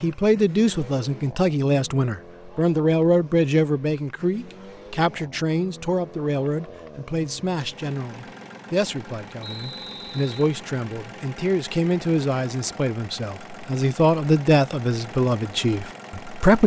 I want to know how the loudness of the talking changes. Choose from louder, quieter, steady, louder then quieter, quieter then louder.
quieter then louder.